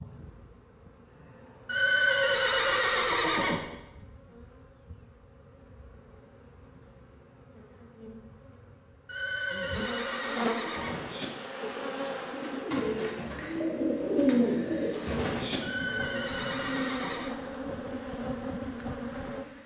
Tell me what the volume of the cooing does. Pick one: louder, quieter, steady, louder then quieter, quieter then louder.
louder then quieter.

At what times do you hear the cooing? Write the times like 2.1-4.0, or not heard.
10.6-16.9.